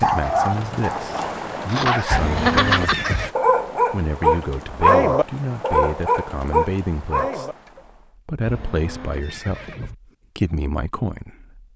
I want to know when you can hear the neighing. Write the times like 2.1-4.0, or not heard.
2.1-3.3, 8.4-9.9.